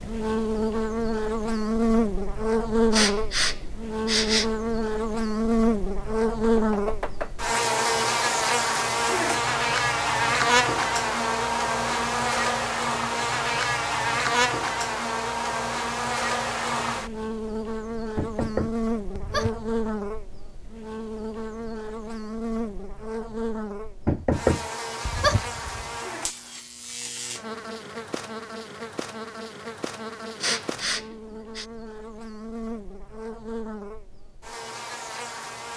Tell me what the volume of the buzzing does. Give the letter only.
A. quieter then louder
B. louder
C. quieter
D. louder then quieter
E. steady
C.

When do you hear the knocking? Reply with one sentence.
The knocking can be heard from 6.5 to 7.3 s, from 18.1 to 20.0 s and from 24.1 to 25.9 s.